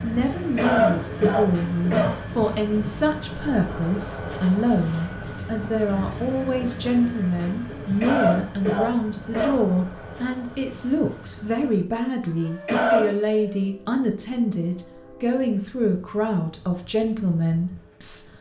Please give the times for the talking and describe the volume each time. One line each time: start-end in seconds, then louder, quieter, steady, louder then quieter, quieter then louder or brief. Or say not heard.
0.0-18.2 steady.